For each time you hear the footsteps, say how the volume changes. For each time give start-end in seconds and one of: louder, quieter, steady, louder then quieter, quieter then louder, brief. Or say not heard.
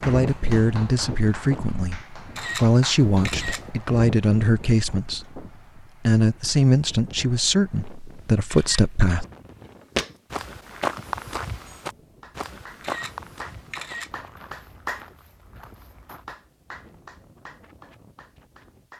9.8-16.2 quieter.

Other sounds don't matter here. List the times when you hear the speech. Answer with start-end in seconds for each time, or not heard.
0.1-5.5, 6.0-9.2.